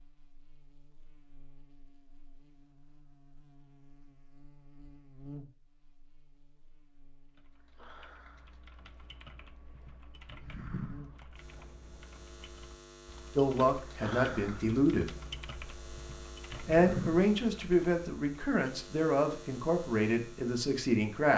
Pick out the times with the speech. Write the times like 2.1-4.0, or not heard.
13.3-15.2, 16.6-21.3.